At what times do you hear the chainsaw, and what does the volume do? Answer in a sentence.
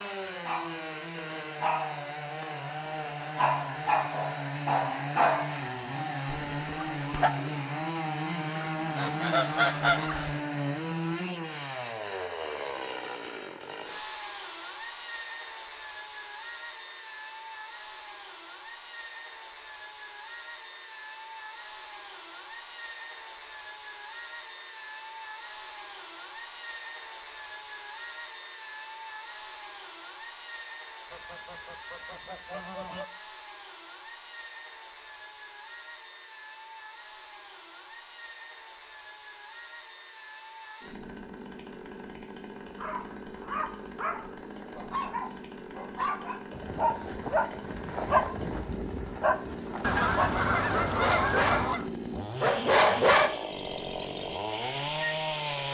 The chainsaw can be heard from 0.0 to 55.7 s, getting quieter then louder.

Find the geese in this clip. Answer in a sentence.
You can hear the geese from 8.9 to 10.4 s, from 31.1 to 33.0 s and from 49.8 to 51.9 s.